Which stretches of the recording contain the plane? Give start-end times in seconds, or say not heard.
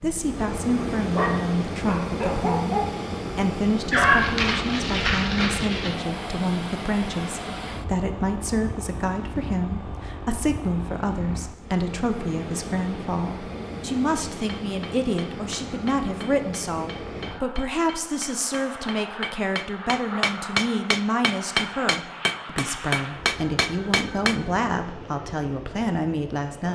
0.0-26.7.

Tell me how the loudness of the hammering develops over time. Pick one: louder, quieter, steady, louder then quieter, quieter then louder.
louder.